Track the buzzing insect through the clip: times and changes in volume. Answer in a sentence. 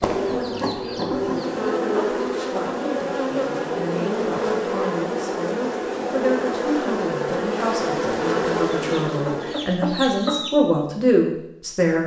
The buzzing insect can be heard from 0.0 to 9.6 s, at a steady volume.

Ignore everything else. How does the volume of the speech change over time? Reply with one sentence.
The volume of the speech goes up.